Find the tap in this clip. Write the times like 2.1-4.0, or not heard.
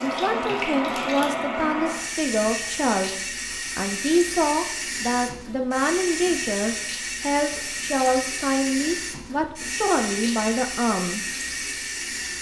0.0-12.3.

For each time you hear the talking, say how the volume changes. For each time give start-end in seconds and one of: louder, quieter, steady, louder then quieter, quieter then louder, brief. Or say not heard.
0.0-11.2 steady.